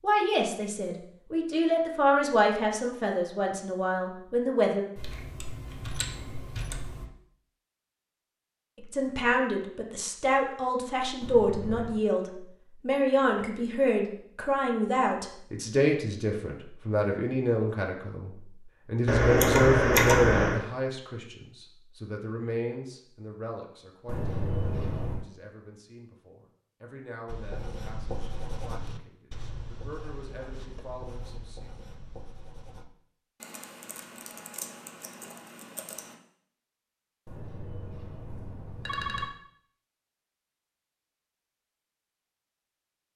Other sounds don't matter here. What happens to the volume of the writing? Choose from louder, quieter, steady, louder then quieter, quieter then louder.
quieter.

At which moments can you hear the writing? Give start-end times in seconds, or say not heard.
27.2-32.9.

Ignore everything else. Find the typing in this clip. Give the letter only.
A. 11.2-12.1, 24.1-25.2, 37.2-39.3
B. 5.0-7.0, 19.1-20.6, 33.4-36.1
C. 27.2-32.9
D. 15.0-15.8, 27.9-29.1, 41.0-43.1
B.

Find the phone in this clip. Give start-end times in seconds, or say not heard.
11.2-12.1, 24.1-25.2, 37.2-39.3.